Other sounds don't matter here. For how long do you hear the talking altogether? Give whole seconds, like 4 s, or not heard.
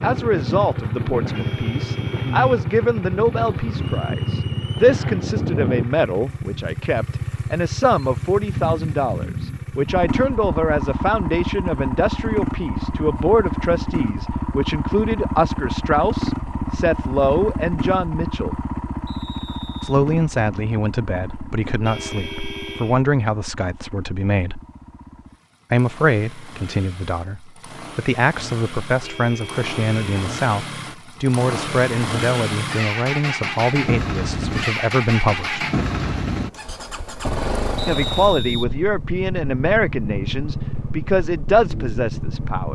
38 s.